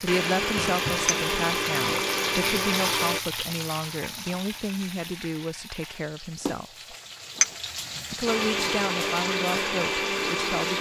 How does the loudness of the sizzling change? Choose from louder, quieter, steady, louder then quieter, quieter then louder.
quieter then louder.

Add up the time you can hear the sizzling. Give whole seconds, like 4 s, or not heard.
11 s.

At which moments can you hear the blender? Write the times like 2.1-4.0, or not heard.
0.1-3.2, 8.2-10.7.